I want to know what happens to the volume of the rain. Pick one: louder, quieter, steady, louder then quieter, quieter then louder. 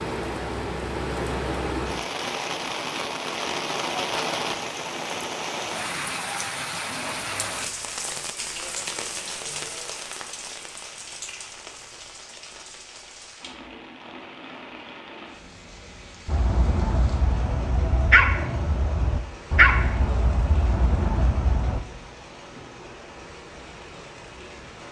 quieter.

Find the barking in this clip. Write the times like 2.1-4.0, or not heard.
16.2-21.8.